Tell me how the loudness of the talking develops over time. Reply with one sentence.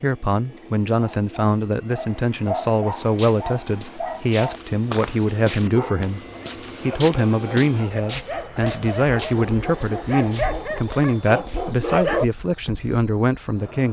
The volume of the talking stays about the same.